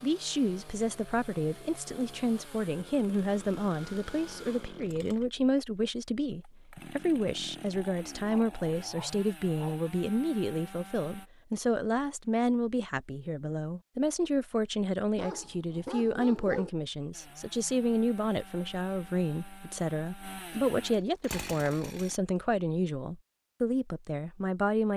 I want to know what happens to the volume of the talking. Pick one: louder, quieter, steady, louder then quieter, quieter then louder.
steady.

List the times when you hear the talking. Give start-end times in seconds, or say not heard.
0.0-24.9.